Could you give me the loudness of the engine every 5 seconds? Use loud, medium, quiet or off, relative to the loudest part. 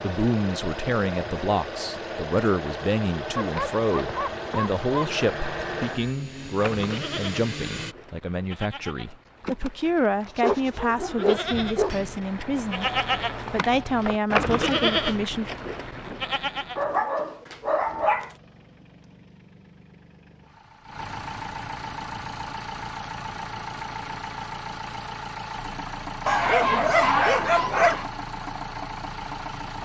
loud, loud, off, quiet, loud, loud.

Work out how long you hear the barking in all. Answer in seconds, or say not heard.
7 s.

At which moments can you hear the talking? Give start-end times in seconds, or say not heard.
0.0-15.5.